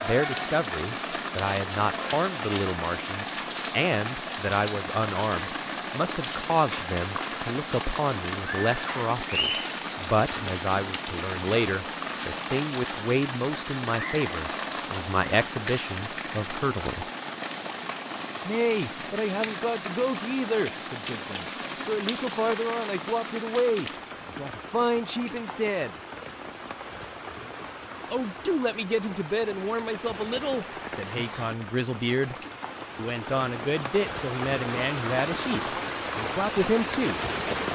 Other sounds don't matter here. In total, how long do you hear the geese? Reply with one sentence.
The geese can't be heard in this clip.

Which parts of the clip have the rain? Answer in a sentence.
You can hear the rain from 0.0 to 37.7 s.